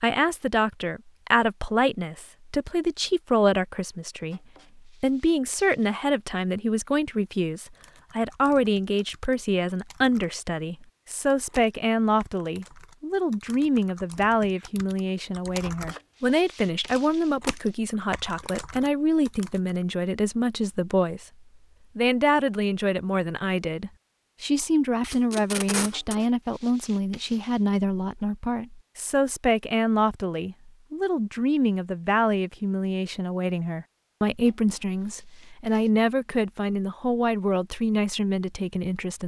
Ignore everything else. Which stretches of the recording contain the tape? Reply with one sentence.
The tape can be heard from 25.0 to 26.1 s.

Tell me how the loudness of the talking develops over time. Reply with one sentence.
The volume of the talking stays about the same.